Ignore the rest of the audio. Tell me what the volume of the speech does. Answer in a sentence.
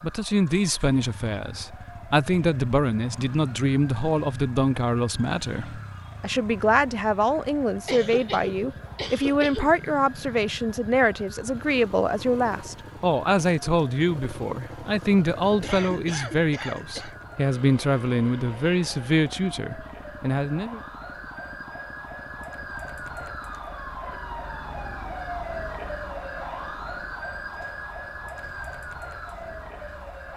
The volume of the speech stays about the same.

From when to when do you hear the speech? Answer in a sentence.
You can hear the speech from 0.0 to 20.8 s.